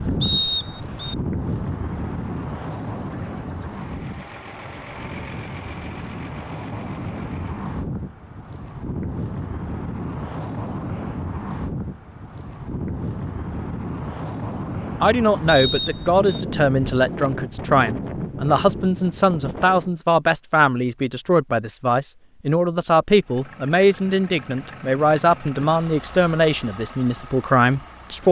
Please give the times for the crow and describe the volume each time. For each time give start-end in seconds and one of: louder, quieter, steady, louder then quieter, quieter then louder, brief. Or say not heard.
not heard.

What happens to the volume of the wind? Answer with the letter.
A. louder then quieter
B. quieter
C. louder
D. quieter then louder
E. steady
E.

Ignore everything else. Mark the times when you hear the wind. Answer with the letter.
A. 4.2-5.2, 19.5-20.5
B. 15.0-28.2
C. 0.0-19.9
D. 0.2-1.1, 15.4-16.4
C.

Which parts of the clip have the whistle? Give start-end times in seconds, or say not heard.
0.2-1.1, 15.4-16.4.